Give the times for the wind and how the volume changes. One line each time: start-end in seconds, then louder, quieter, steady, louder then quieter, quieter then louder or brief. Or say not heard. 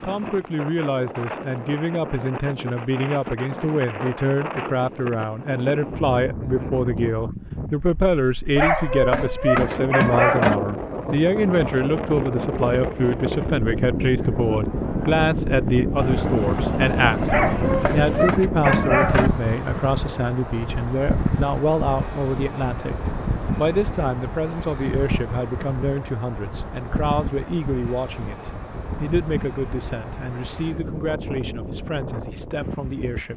0.0-33.3 louder then quieter.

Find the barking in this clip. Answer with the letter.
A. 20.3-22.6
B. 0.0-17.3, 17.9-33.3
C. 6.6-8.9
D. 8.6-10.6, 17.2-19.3
D.